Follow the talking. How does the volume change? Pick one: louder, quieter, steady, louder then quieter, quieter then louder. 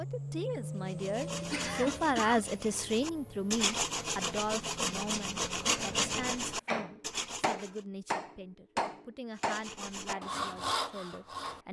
quieter.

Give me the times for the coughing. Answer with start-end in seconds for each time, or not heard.
1.4-2.5.